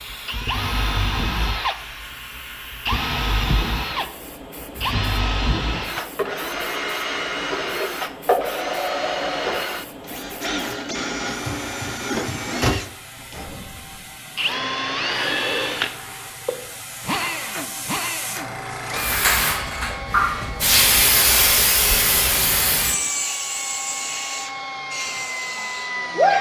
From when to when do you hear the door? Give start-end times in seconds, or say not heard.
11.4-12.8.